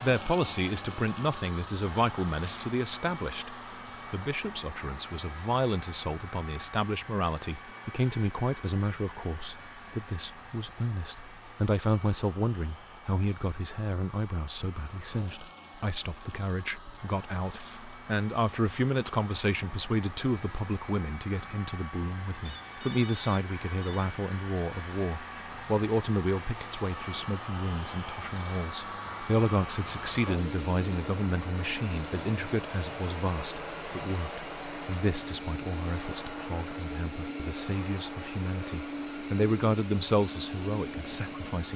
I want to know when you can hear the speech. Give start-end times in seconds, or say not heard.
0.0-41.7.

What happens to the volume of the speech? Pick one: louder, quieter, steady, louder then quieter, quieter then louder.
steady.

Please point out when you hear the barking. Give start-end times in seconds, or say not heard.
not heard.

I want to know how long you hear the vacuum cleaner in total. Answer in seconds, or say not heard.
42 s.